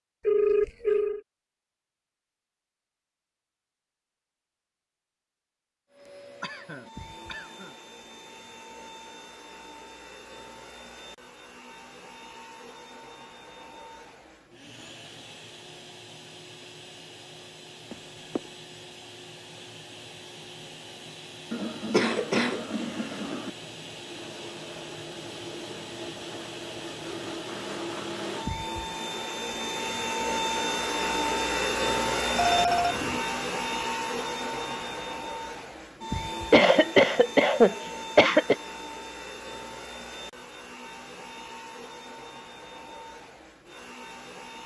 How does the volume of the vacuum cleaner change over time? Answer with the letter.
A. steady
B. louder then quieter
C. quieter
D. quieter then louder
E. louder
B.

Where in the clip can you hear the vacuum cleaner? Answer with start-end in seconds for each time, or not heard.
5.9-44.6.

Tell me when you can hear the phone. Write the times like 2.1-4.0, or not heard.
0.2-1.2, 17.9-18.5, 32.4-33.2.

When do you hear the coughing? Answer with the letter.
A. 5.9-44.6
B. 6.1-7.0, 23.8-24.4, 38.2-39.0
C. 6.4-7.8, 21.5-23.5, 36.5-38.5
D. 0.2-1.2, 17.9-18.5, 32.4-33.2
C.